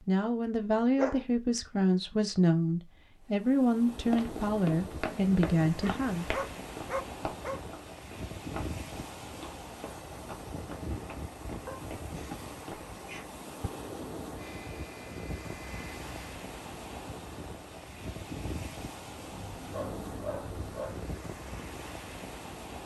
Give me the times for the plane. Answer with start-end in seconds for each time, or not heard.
14.3-16.4.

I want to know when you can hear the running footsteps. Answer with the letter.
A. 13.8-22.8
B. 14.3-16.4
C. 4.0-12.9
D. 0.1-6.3
C.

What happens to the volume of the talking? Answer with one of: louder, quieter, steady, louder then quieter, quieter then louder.
steady.